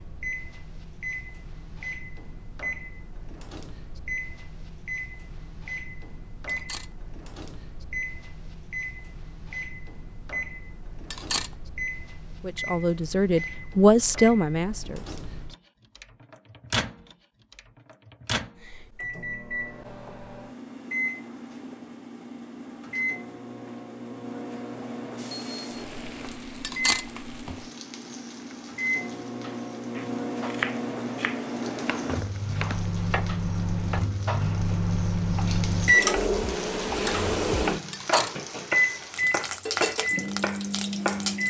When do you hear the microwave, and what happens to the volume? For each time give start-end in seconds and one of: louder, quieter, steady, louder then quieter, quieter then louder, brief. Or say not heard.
0.0-41.4 louder.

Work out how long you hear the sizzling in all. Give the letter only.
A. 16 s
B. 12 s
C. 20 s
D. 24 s
A.